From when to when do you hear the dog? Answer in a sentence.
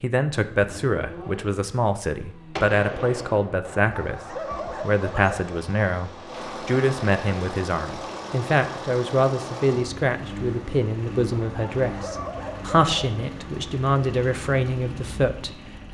The dog can be heard from 3.6 to 5.5 s and from 11.4 to 13.2 s.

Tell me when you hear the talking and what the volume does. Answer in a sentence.
The talking can be heard from 0.0 to 15.8 s, at a steady volume.